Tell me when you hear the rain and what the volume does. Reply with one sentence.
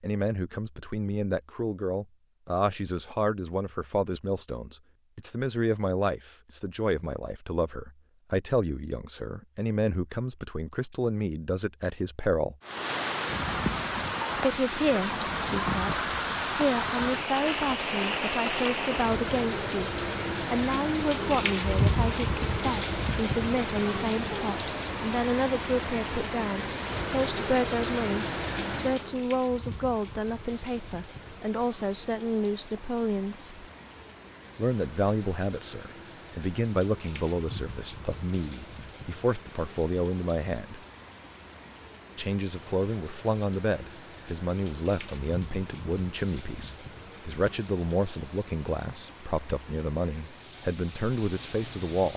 You can hear the rain from 12.7 to 52.1 s, getting quieter.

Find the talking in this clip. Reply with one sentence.
The talking can be heard from 0.0 to 12.6 s, from 14.3 to 33.6 s, from 34.5 to 40.8 s and from 42.1 to 52.1 s.